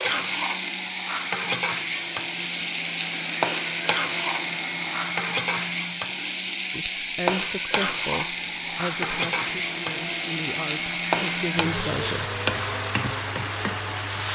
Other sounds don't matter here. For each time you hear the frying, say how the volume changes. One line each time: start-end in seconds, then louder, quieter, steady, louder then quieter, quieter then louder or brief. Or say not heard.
0.0-14.3 steady.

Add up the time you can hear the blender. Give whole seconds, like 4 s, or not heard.
14 s.